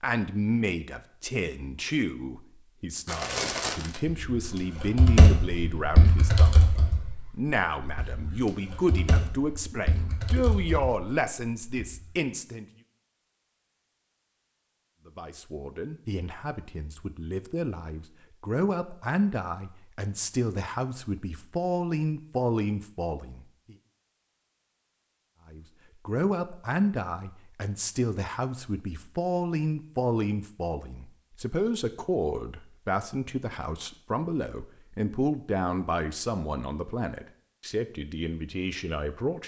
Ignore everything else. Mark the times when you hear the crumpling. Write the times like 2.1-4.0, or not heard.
3.0-4.0.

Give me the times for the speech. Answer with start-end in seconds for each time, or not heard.
0.0-6.7, 7.3-12.7, 15.1-23.8, 25.5-39.4.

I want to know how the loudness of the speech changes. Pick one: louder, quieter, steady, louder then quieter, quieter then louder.
steady.